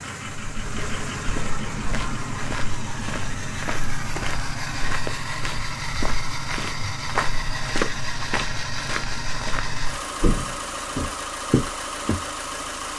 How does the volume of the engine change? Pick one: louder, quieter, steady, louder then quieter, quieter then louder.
steady.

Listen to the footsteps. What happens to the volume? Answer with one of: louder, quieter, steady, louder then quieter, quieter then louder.
louder.